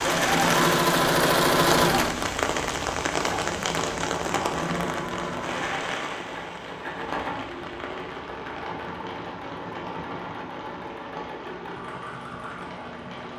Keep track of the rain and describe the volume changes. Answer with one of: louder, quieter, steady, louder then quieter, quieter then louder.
quieter.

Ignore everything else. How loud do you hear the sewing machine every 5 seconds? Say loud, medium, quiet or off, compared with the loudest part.
loud, quiet, quiet.